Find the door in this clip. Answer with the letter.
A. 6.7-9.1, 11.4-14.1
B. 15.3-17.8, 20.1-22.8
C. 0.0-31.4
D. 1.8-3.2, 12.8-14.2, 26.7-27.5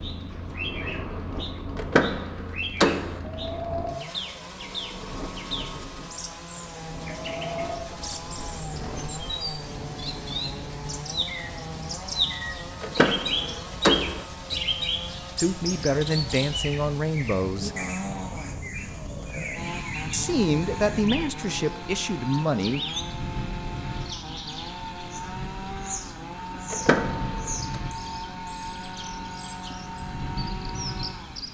D.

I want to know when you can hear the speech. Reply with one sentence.
You can hear the speech from 15.3 to 17.8 s and from 20.1 to 22.8 s.